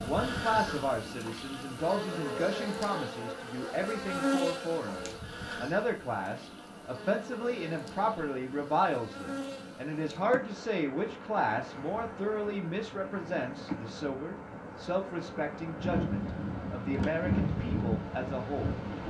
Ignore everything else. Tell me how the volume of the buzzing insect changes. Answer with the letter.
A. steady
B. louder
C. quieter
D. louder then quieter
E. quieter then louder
C.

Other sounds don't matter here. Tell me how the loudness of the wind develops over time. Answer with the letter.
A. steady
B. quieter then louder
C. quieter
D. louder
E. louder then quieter
D.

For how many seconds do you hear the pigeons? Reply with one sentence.
The pigeons can't be heard in this clip.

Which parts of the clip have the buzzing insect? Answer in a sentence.
The buzzing insect can be heard from 0.0 to 19.0 s.